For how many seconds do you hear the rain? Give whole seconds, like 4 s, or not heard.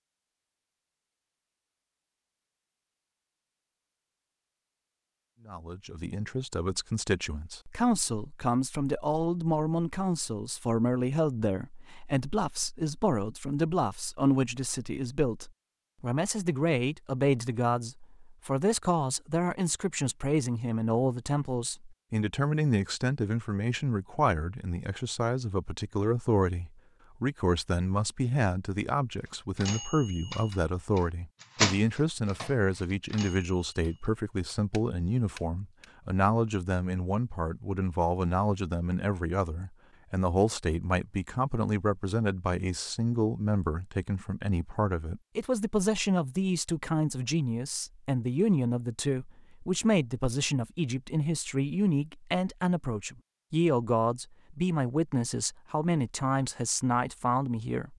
not heard.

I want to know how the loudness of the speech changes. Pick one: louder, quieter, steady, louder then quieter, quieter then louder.
steady.